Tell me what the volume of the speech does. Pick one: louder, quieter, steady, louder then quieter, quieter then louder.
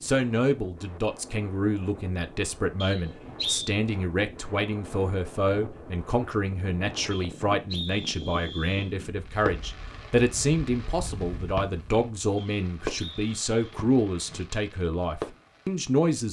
steady.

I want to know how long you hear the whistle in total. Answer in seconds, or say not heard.
4 s.